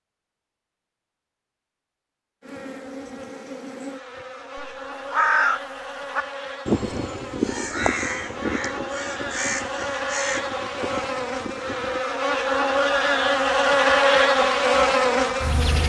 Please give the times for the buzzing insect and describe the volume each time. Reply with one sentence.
The buzzing insect can be heard from 2.4 to 15.8 s, getting louder.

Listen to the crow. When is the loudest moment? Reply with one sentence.
The volume of the crow peaks at 5 seconds.